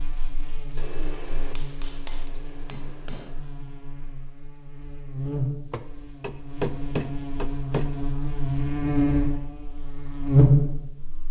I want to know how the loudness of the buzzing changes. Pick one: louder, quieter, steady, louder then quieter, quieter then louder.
louder.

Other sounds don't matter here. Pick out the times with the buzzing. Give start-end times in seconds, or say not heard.
0.0-11.2.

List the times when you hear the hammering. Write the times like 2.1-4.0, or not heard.
0.8-3.4, 5.7-7.9.